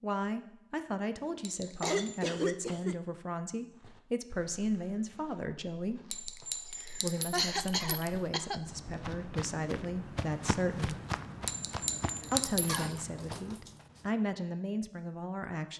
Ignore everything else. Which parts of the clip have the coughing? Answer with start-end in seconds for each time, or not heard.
1.3-3.0, 6.8-8.6, 12.7-14.0.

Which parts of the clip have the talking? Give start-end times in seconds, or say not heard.
0.0-6.0, 7.0-10.9, 12.3-15.7.